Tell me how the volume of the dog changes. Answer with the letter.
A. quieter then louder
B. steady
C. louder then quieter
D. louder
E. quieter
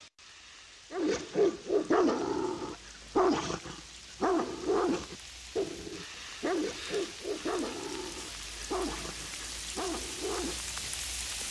E.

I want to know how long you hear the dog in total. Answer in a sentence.
You can hear the dog for 10 seconds altogether.